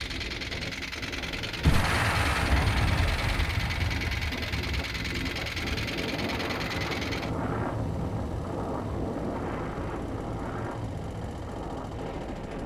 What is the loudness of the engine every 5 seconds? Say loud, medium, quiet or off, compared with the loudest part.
loud, loud, medium.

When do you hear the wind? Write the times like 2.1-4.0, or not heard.
0.0-12.6.